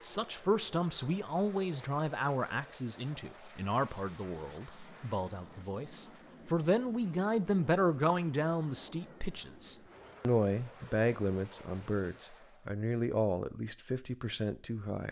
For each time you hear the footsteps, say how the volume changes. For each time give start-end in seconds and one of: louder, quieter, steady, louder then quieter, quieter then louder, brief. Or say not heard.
not heard.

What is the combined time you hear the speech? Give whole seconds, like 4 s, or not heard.
15 s.